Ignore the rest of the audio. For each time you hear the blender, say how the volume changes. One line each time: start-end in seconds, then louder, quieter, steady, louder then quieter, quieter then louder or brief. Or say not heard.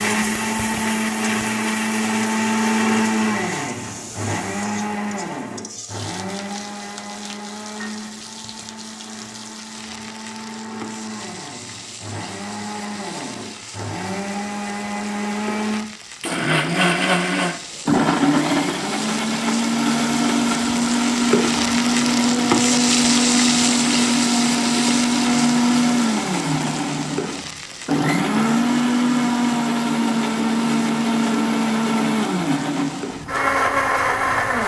0.0-34.6 quieter then louder.